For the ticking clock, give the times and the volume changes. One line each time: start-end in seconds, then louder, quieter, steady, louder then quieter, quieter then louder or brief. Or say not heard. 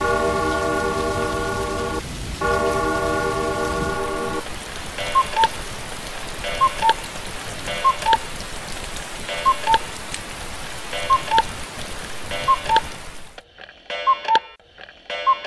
0.0-15.4 steady.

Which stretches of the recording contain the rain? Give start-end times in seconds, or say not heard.
0.0-13.4.